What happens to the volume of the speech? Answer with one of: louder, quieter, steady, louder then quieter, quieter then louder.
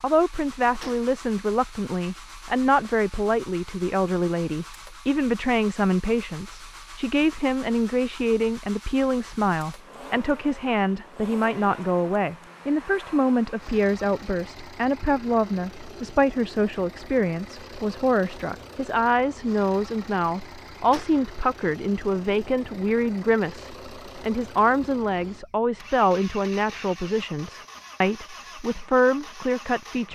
steady.